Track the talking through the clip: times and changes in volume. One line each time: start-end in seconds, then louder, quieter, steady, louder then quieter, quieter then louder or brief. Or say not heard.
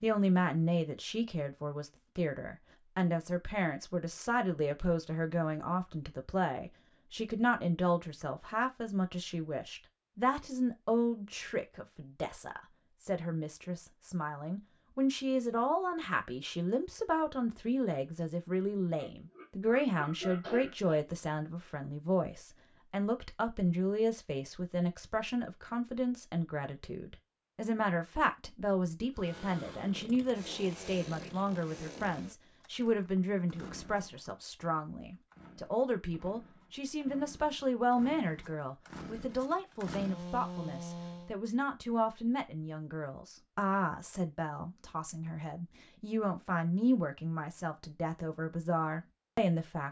0.0-49.8 steady.